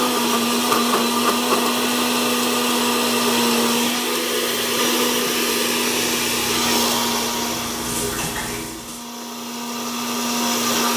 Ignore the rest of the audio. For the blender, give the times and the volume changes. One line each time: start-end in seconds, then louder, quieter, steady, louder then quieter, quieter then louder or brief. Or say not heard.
0.0-10.9 quieter.